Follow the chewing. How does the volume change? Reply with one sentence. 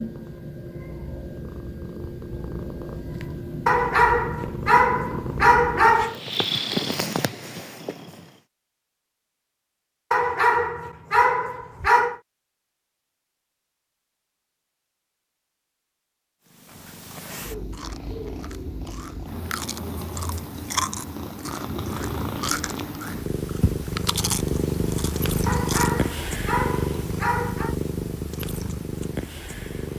The loudness of the chewing goes up.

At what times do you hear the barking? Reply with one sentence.
The barking can be heard from 3.6 to 6.2 s, from 10.1 to 12.2 s and from 25.4 to 27.8 s.